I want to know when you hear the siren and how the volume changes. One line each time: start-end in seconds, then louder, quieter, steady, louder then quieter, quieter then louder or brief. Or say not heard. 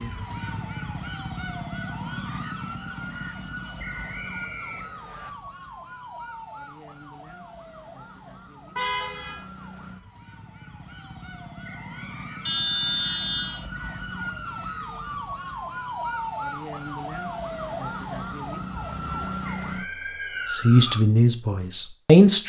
0.0-21.1 quieter then louder.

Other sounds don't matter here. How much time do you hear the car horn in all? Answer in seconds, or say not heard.
2 s.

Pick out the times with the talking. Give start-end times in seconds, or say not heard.
20.4-22.4.